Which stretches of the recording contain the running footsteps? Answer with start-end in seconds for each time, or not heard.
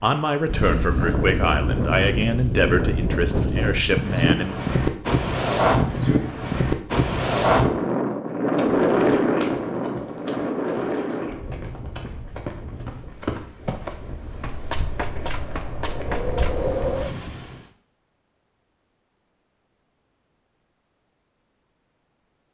8.6-16.6.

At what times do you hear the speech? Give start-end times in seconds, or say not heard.
0.0-4.5.